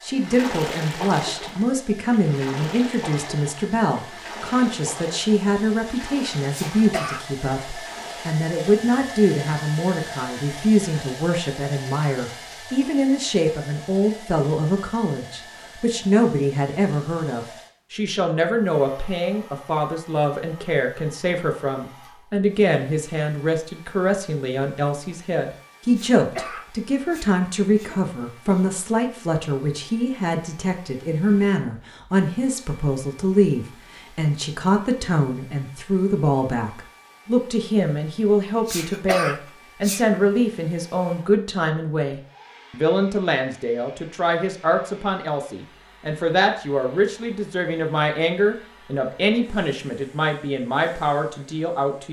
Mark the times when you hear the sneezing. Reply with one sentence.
You can hear the sneezing from 6.5 to 7.2 s, from 25.9 to 28.6 s and from 38.6 to 40.0 s.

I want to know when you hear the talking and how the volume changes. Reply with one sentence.
You can hear the talking from 0.0 to 52.0 s, at a steady volume.